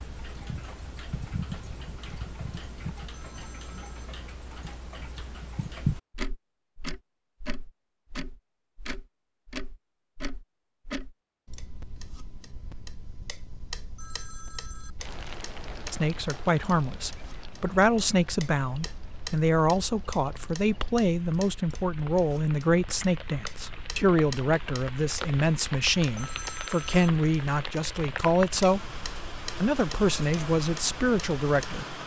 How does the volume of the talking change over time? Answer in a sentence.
The loudness of the talking stays about the same.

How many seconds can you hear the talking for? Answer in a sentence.
You can hear the talking for 16 seconds altogether.